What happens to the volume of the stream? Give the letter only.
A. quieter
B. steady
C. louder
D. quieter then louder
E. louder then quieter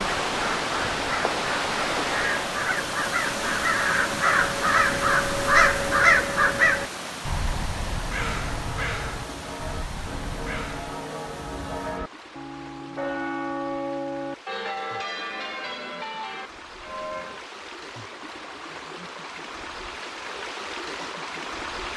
D.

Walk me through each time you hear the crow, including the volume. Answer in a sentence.
The crow can be heard from 0.0 to 10.9 s, getting louder then quieter.